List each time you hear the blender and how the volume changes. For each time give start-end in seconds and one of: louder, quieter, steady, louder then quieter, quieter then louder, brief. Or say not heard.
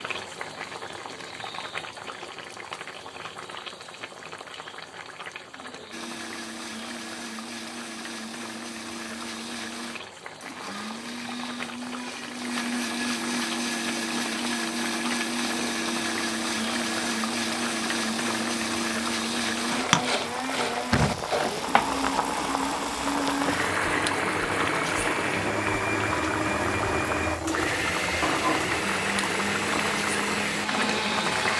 5.9-31.5 louder.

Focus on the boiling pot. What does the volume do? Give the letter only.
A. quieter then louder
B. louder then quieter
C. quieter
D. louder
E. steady
D.